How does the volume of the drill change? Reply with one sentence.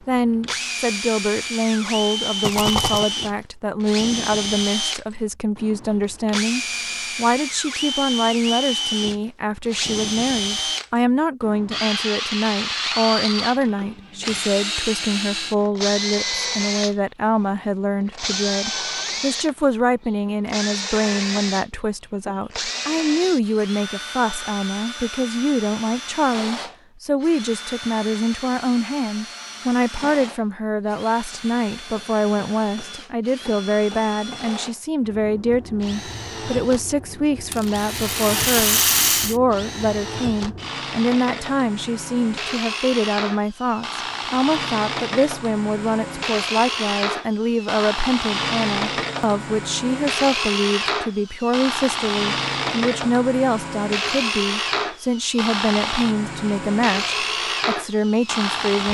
The loudness of the drill goes down, then up.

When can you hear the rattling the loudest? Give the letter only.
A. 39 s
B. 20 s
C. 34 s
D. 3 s
A.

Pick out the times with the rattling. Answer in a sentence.
You can hear the rattling from 2.4 to 3.0 s and from 37.5 to 39.4 s.